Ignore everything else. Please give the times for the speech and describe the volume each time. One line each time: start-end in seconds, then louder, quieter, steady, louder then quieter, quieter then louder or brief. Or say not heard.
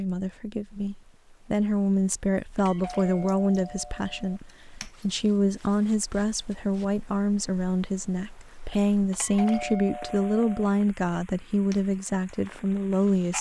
0.0-13.3 steady.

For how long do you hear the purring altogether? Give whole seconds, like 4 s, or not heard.
not heard.